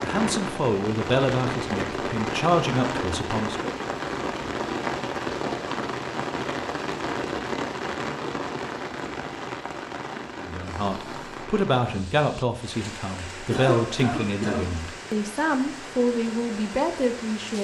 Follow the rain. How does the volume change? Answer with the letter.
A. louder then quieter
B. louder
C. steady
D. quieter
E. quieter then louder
D.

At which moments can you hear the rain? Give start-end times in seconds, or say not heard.
0.0-17.5.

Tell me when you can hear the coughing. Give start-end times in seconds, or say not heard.
13.5-14.8.